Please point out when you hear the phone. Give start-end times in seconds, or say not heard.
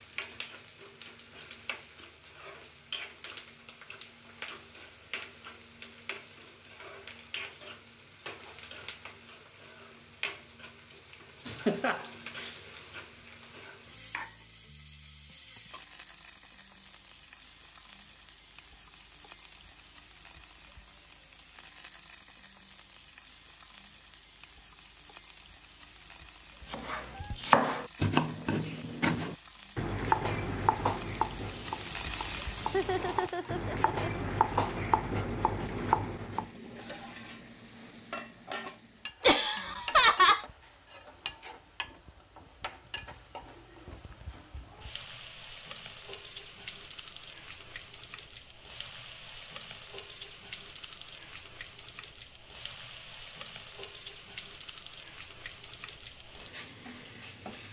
not heard.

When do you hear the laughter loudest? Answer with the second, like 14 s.
40 s.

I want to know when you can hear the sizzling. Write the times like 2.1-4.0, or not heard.
0.0-57.6.